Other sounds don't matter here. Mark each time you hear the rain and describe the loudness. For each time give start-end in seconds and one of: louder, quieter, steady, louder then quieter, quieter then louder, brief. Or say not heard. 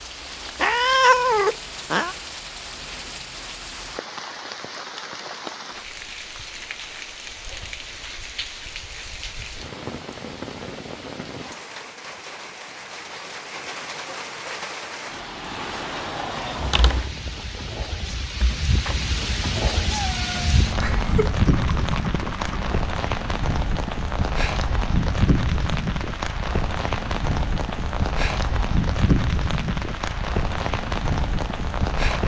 0.0-32.2 louder.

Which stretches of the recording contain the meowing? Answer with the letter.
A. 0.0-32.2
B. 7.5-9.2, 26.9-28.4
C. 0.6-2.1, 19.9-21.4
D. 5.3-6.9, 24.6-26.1
C.